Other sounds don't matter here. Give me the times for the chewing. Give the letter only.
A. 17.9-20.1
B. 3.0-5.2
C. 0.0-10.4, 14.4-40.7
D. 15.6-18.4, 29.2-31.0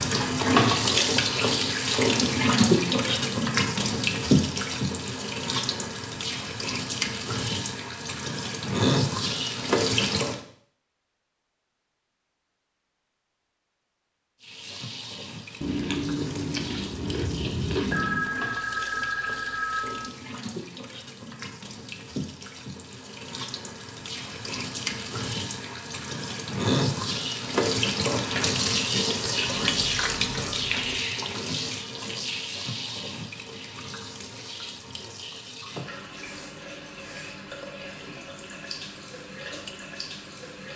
D.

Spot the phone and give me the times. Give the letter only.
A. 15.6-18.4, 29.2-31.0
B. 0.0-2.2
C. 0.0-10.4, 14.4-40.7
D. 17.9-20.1
D.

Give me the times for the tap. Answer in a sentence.
You can hear the tap from 0.0 to 10.4 s and from 14.4 to 40.7 s.